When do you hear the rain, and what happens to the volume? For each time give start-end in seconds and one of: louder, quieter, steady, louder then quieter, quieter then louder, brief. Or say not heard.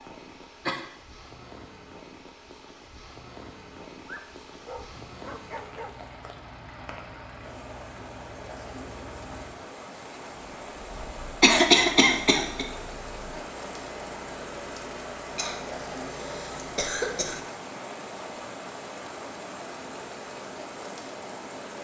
0.0-21.7 louder.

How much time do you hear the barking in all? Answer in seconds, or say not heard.
2 s.